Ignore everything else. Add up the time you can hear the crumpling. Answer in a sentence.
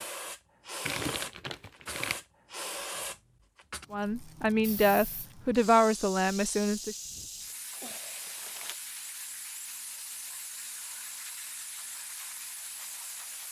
The crumpling can be heard for 3 seconds in total.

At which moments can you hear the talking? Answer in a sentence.
The talking can be heard from 3.9 to 7.0 s.